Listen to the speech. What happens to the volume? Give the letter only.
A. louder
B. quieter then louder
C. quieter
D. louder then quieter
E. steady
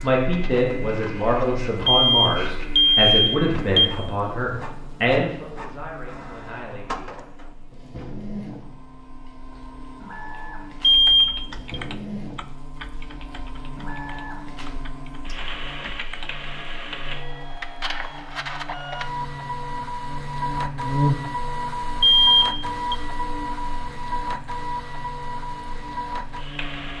C.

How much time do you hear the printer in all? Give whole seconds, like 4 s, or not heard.
27 s.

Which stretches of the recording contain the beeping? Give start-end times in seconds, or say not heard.
1.9-3.9, 10.8-11.8, 22.0-22.9.